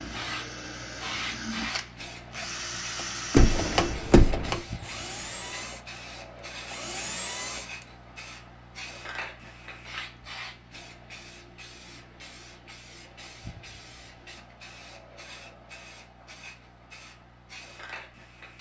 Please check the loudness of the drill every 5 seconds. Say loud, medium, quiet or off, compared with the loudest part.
loud, loud, off, off.